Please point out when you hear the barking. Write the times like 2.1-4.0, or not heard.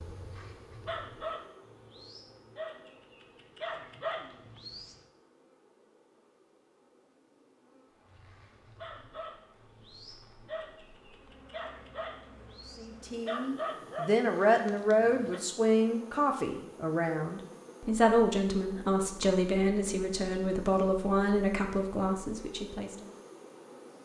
0.0-5.0, 8.1-15.4.